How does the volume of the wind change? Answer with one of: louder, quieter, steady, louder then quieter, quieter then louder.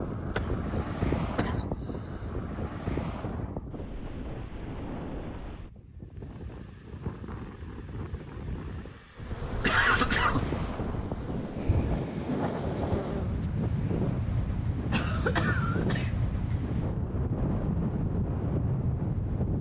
quieter then louder.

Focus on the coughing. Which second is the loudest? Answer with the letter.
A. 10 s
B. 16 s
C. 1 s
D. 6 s
A.